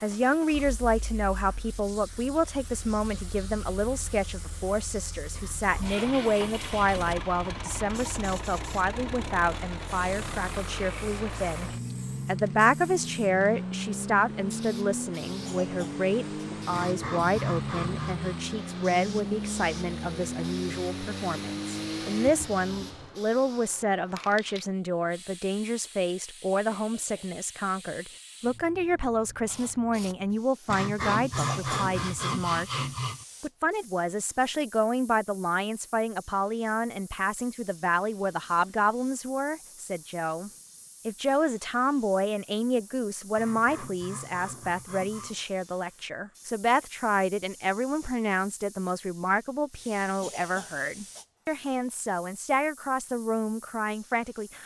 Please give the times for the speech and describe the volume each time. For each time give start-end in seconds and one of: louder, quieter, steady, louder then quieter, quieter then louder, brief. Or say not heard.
0.0-54.6 steady.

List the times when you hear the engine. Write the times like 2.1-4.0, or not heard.
0.0-23.1.